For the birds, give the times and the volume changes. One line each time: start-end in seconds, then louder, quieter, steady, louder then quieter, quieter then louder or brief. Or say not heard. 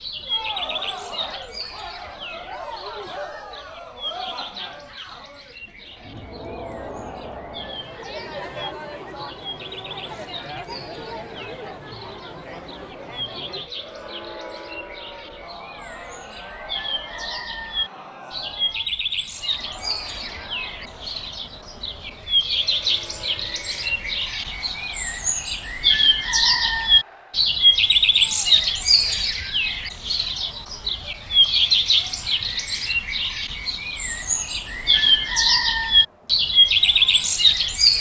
0.0-37.9 louder.